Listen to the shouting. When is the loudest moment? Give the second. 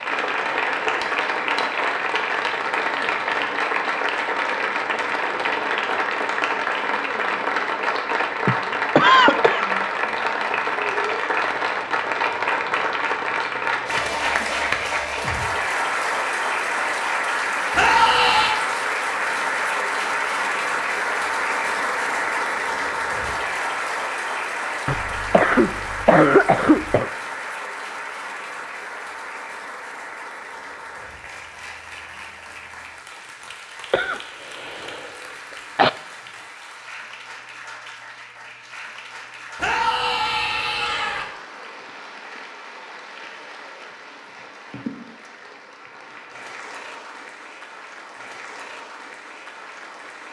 18 s.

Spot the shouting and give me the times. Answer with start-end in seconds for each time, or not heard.
17.7-18.6, 39.5-41.2.